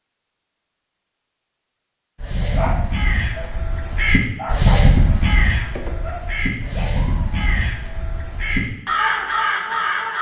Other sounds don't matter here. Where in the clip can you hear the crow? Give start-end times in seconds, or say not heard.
2.1-10.1.